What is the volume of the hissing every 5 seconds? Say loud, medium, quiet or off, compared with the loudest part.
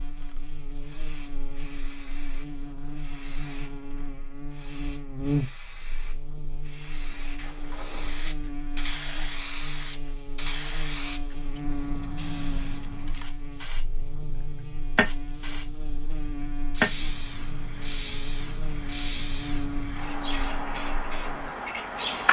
medium, medium, medium, loud, loud.